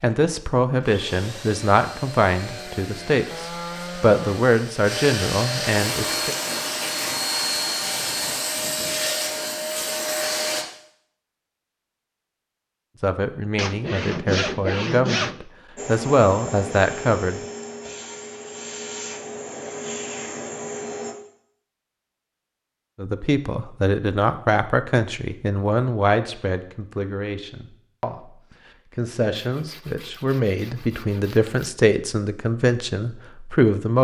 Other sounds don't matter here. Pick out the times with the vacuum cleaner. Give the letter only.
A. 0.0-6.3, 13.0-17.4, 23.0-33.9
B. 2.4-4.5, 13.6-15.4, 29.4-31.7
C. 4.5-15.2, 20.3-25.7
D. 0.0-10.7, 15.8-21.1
D.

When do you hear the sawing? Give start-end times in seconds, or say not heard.
2.4-4.5, 13.6-15.4, 29.4-31.7.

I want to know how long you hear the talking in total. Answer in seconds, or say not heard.
22 s.